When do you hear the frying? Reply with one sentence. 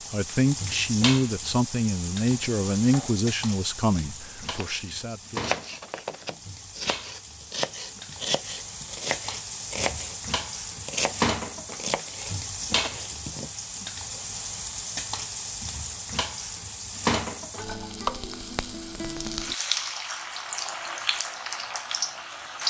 You can hear the frying from 0.0 to 22.6 s.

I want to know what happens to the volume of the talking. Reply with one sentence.
The volume of the talking goes down.